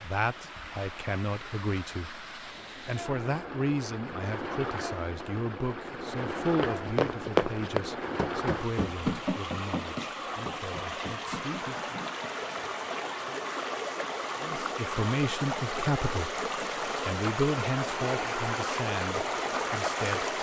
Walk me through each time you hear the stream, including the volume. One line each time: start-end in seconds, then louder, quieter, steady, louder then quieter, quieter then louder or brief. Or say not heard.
0.0-20.3 louder.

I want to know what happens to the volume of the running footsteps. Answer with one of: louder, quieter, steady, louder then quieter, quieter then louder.
quieter.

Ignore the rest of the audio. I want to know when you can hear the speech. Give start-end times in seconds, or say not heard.
0.0-11.9, 14.4-20.3.